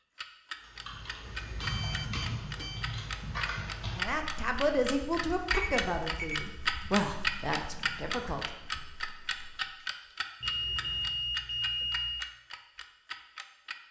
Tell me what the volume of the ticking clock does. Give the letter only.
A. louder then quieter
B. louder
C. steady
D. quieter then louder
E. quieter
A.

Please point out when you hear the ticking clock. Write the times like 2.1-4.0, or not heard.
0.1-13.8.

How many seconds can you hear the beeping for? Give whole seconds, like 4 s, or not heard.
4 s.